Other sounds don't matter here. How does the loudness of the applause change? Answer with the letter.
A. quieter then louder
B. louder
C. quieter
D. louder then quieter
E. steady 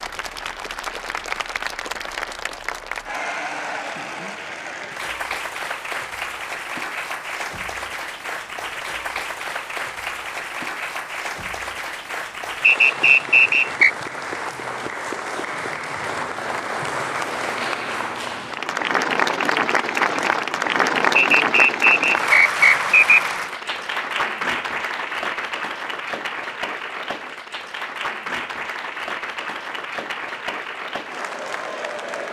D.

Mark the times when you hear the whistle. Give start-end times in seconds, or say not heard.
12.6-13.9, 21.1-23.2.